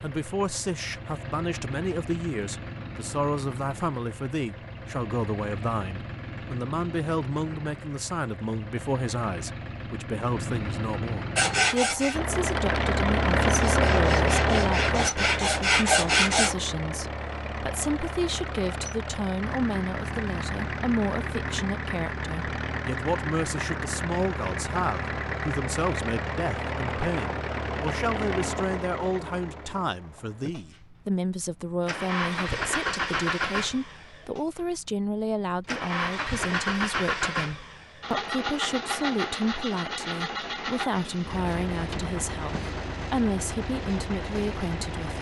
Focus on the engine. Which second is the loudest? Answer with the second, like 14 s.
14 s.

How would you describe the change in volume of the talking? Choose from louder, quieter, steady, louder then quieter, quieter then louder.
steady.